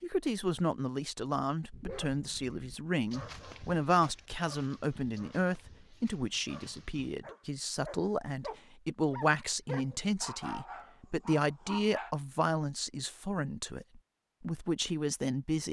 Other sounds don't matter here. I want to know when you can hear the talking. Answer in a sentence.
You can hear the talking from 0.0 to 15.6 s.